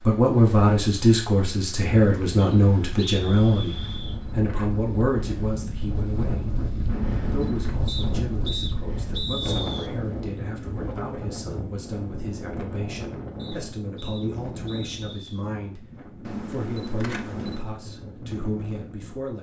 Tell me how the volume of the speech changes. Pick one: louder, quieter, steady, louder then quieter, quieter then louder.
quieter.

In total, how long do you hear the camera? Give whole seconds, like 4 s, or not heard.
3 s.